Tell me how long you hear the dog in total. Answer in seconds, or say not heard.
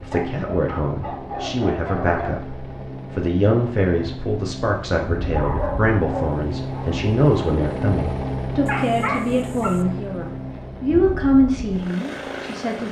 5 s.